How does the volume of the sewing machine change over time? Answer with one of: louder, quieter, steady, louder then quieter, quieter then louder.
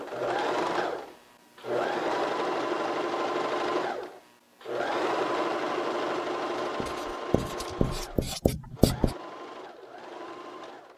quieter.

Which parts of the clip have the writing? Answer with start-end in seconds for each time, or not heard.
6.6-9.2.